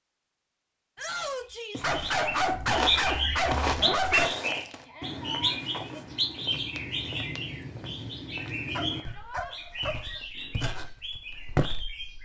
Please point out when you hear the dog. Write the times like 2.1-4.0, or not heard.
1.8-4.3, 8.8-10.1.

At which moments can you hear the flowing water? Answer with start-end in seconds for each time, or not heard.
not heard.